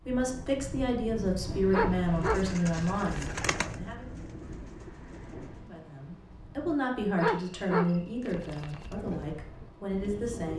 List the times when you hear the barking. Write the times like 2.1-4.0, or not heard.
1.7-3.4, 7.2-8.8.